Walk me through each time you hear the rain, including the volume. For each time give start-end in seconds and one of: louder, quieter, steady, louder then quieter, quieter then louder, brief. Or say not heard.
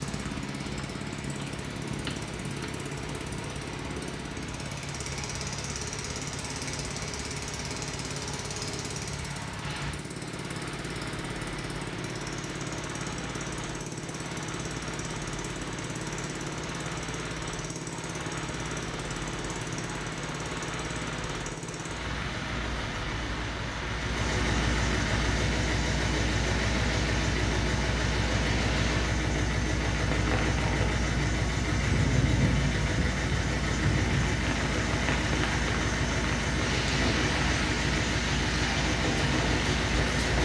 0.0-40.4 louder.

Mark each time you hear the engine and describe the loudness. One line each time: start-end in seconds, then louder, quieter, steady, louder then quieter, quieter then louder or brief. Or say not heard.
0.0-40.4 louder.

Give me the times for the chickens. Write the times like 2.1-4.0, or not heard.
not heard.